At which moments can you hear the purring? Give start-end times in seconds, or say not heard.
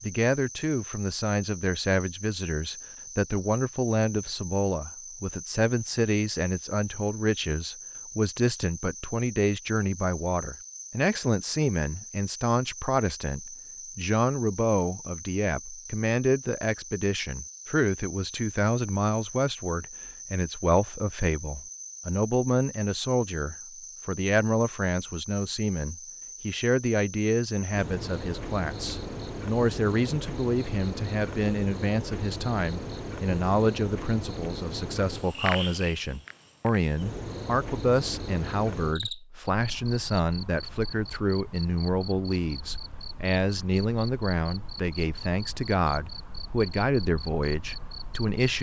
not heard.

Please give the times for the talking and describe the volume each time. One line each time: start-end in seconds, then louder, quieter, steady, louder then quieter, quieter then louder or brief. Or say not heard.
0.0-48.5 steady.